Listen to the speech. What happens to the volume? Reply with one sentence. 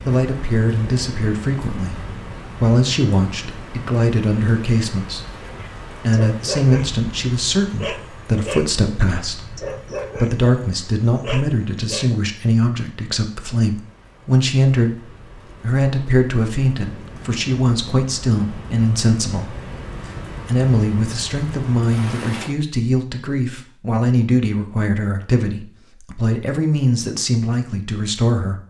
The volume of the speech stays about the same.